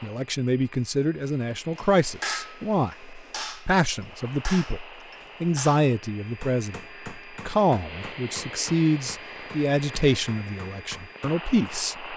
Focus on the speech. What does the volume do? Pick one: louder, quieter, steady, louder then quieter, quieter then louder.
steady.